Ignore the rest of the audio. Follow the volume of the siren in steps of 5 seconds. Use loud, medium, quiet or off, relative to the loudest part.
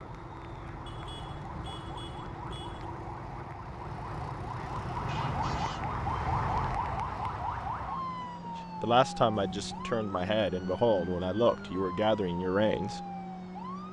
medium, loud, medium.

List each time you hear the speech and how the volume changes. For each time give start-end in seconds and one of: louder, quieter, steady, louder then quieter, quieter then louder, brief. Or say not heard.
8.8-13.0 steady.